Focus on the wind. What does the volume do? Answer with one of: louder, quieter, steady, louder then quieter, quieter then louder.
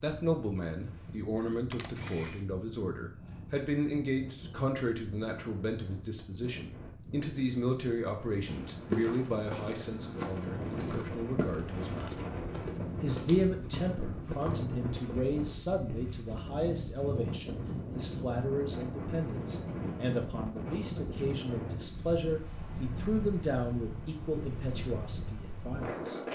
louder.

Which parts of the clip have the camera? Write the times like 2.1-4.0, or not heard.
1.7-2.5.